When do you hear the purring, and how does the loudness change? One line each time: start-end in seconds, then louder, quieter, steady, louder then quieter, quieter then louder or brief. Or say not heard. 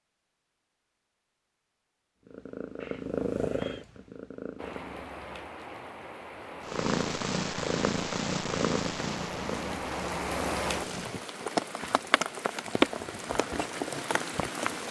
2.2-5.1 brief
6.6-11.2 quieter.